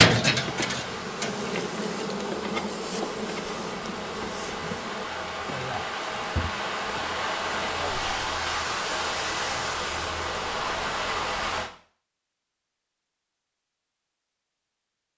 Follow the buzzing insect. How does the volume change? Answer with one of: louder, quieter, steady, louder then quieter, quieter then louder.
quieter.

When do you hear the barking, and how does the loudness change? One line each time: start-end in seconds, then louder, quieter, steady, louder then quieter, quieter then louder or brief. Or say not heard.
not heard.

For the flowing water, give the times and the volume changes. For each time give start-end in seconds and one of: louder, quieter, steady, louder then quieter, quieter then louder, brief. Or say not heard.
0.2-11.7 louder.